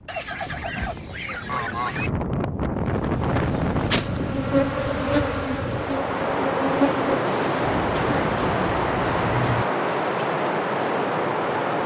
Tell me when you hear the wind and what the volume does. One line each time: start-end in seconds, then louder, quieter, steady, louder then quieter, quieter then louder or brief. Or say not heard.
0.0-11.8 louder.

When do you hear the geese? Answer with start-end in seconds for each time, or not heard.
0.1-2.1, 7.8-9.7.